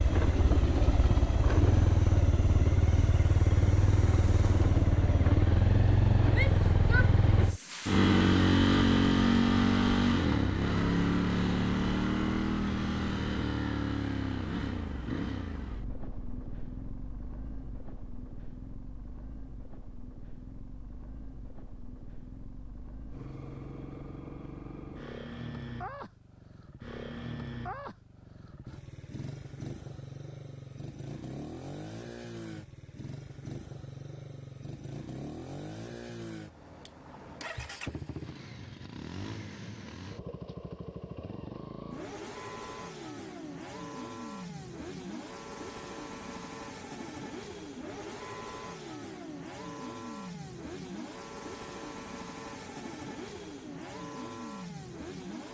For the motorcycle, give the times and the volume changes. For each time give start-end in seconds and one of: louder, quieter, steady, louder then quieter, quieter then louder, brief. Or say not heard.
0.0-55.4 quieter.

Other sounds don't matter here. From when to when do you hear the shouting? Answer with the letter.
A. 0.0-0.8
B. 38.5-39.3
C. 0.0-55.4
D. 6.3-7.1
D.